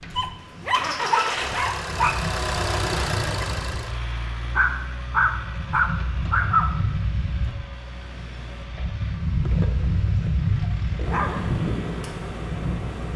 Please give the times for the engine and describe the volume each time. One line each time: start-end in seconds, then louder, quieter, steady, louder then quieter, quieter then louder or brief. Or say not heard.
0.0-13.1 quieter.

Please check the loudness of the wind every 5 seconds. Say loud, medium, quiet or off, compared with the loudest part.
medium, loud, loud.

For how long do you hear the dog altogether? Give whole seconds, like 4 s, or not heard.
6 s.